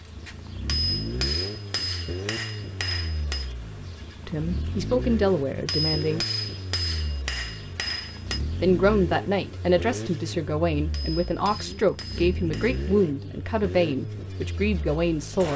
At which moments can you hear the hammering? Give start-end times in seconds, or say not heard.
0.7-3.5, 5.7-8.4, 10.9-12.9.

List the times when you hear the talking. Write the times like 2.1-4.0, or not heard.
4.2-6.2, 8.6-15.5.